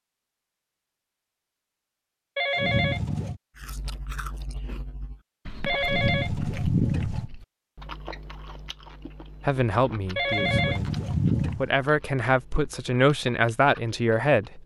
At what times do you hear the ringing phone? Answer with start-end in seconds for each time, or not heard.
2.4-3.4, 5.7-7.3, 10.2-11.7.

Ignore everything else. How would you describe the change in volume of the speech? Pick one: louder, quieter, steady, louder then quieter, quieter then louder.
quieter then louder.